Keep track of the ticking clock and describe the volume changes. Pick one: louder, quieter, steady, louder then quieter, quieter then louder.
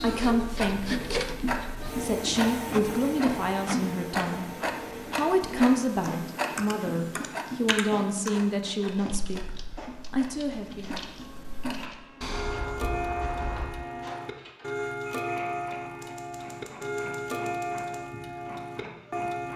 quieter then louder.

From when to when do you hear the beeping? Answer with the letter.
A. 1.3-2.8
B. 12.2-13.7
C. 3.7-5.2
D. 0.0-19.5
B.